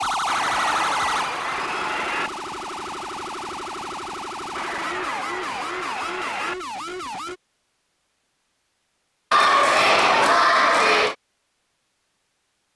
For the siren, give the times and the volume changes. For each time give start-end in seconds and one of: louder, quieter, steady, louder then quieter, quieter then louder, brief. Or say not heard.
0.0-7.4 quieter.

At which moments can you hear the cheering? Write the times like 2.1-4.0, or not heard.
0.2-2.3, 4.5-6.5, 9.3-11.2.